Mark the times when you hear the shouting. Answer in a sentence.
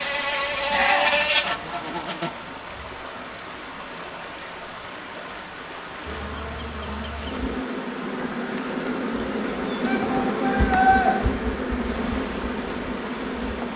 The shouting can be heard from 0.7 to 1.2 s and from 9.8 to 11.1 s.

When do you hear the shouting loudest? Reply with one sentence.
The volume of the shouting peaks at 11 seconds.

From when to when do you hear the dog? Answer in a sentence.
The dog can't be heard in this clip.